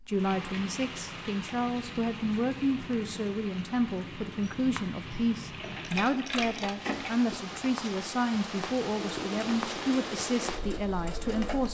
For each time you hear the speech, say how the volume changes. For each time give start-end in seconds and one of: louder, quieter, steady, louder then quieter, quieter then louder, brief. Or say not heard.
0.1-11.6 steady.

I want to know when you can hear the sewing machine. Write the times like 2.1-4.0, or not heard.
4.4-7.3, 8.9-11.6.